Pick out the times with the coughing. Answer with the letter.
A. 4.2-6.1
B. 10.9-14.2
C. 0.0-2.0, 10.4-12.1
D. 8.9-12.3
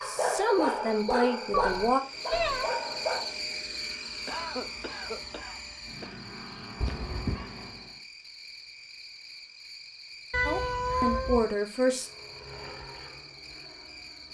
A.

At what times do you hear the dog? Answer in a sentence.
The dog can be heard from 0.0 to 3.4 s.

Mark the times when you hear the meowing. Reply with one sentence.
You can hear the meowing from 1.5 to 2.7 s, from 6.8 to 7.5 s and from 10.3 to 11.4 s.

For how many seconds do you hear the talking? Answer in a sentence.
You can hear the talking for 4 seconds altogether.